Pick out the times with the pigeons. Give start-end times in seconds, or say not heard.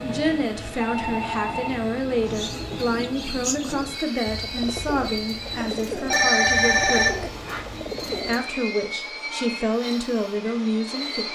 2.2-8.4.